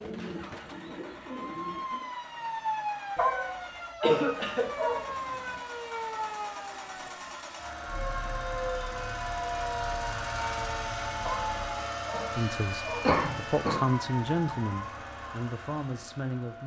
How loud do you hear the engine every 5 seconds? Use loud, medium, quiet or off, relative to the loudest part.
medium, loud, loud, medium.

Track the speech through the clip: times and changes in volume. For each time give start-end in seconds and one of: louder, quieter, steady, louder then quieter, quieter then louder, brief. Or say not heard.
12.3-16.6 louder then quieter.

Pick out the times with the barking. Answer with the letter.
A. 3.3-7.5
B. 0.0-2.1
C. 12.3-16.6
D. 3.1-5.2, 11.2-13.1
D.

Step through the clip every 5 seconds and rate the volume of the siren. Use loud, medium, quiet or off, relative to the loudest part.
loud, loud, loud, off.